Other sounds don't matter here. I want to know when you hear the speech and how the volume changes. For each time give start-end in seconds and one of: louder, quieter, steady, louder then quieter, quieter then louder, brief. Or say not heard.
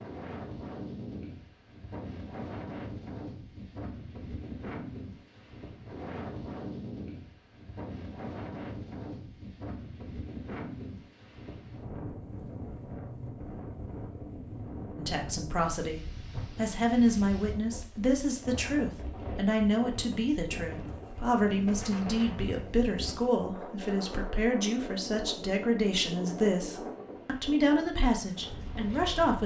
14.9-29.4 steady.